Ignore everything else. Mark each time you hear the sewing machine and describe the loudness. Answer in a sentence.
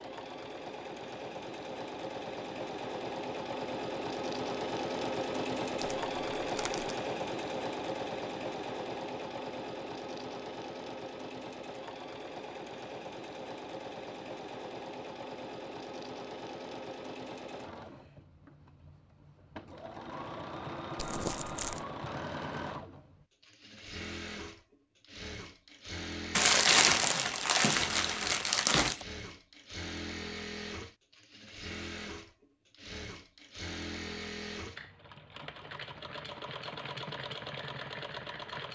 The sewing machine can be heard from 0.0 to 38.6 s, getting quieter.